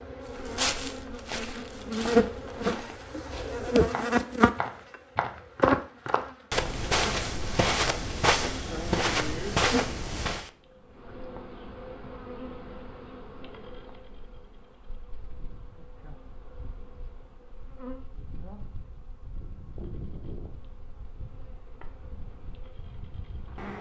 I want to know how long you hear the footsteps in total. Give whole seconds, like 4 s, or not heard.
10 s.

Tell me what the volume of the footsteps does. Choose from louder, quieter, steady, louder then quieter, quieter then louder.
louder.